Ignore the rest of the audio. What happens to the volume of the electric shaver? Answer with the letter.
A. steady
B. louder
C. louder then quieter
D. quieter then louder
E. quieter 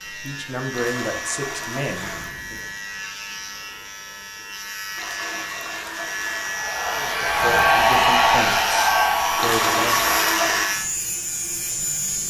B.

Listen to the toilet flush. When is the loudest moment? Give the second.
10 s.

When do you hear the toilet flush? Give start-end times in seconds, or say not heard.
0.7-2.4, 5.0-6.5, 9.3-10.7.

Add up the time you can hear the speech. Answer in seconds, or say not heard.
6 s.